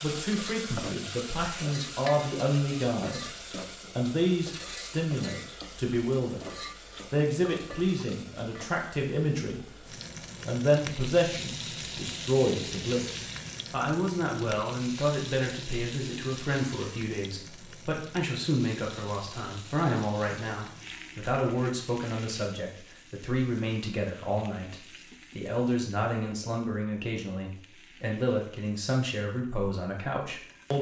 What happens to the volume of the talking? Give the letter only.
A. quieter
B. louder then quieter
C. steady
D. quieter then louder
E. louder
C.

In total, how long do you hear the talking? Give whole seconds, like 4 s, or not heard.
30 s.